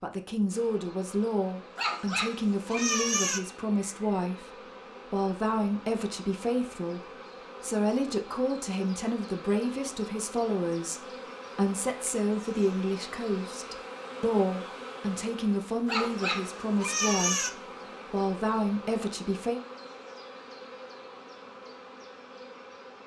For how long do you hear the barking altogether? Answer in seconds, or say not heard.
3 s.